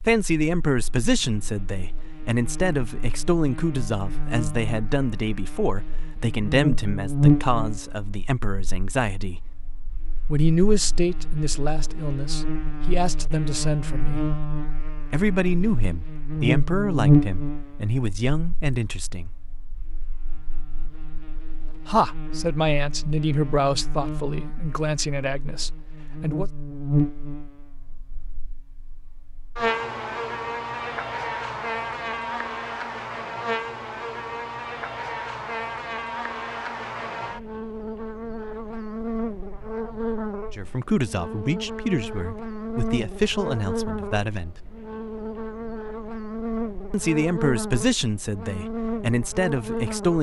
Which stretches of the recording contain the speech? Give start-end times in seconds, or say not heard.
0.0-9.4, 10.2-14.2, 15.1-19.3, 21.9-26.5, 40.5-44.5, 46.9-50.1.